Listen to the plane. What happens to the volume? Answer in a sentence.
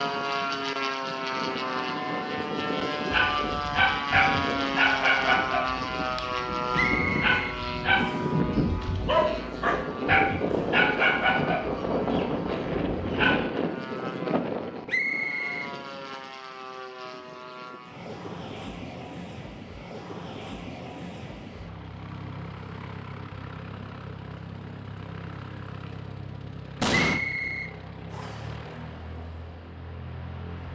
The volume of the plane goes down.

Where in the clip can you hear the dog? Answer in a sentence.
The dog can be heard from 3.1 to 13.4 s.